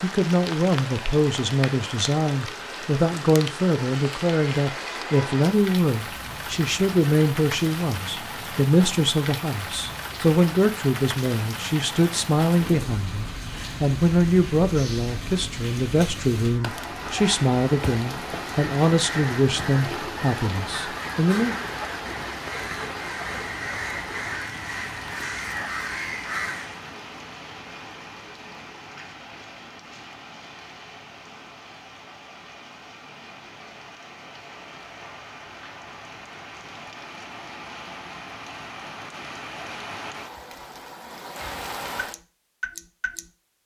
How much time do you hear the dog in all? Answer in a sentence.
You can't hear the dog here.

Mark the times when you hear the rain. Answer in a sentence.
The rain can be heard from 0.0 to 43.6 s.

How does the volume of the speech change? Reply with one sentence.
The volume of the speech stays about the same.